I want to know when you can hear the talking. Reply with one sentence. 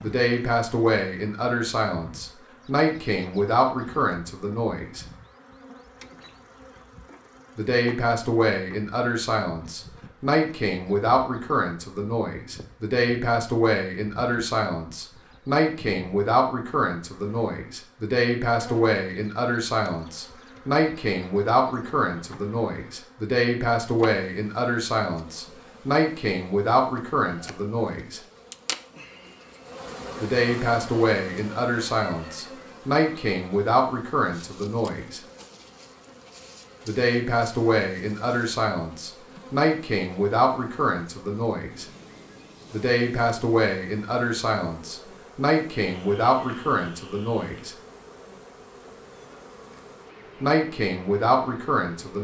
The talking can be heard from 0.0 to 5.0 s, from 7.5 to 28.2 s, from 30.2 to 35.2 s, from 36.9 to 41.9 s, from 42.7 to 47.8 s and from 50.4 to 52.1 s.